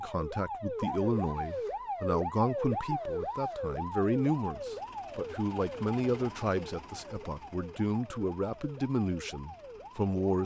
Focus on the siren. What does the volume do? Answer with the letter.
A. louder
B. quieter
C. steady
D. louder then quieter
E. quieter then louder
B.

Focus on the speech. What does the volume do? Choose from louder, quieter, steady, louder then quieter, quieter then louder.
steady.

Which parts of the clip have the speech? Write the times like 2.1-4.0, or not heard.
0.0-10.4.